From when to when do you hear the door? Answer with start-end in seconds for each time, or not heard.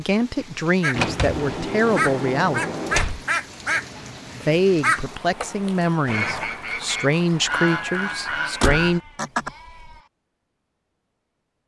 0.9-3.2, 8.6-9.9.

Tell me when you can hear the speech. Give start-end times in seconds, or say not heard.
0.0-2.6, 4.3-9.0.